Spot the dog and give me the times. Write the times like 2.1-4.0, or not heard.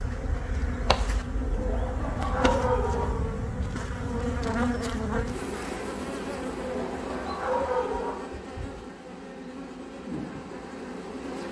1.4-3.0, 6.7-8.2.